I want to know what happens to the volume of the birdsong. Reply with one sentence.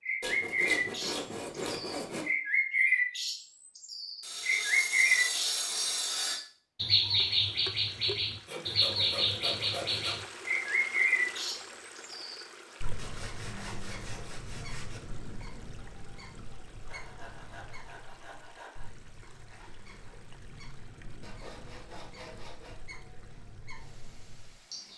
The loudness of the birdsong goes down.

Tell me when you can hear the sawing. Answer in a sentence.
The sawing can be heard from 0.2 to 2.2 s, from 4.2 to 6.4 s, from 8.4 to 10.2 s, from 12.9 to 15.0 s, from 16.9 to 18.9 s and from 21.2 to 22.8 s.